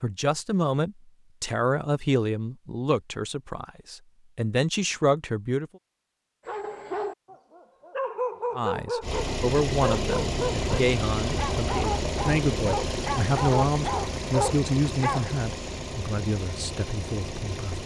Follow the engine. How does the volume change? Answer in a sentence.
The loudness of the engine goes down.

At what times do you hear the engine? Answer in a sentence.
You can hear the engine from 9.0 to 17.8 s.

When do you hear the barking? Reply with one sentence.
The barking can be heard from 6.5 to 15.2 s.